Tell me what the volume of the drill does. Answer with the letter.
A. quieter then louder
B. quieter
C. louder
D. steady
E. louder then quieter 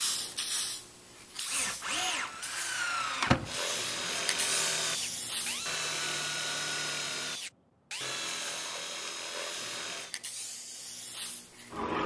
B.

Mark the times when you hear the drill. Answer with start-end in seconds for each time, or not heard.
1.4-10.2.